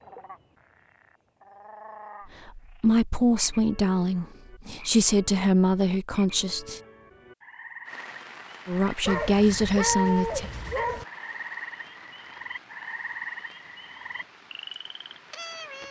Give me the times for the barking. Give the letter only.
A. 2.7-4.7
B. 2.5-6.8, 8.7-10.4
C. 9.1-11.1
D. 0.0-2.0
C.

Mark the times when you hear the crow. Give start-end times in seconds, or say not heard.
not heard.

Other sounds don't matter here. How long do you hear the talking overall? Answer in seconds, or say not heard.
6 s.